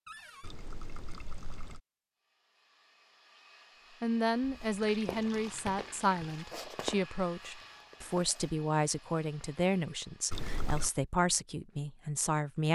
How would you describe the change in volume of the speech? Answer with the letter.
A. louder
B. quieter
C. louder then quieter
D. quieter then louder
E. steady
E.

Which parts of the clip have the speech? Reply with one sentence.
The speech can be heard from 4.0 to 12.7 s.